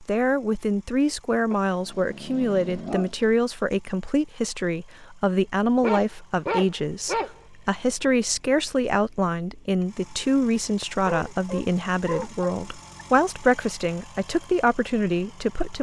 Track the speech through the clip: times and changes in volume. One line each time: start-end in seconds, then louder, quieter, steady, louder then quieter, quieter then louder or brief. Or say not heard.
0.0-15.7 steady.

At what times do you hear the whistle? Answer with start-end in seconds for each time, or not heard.
not heard.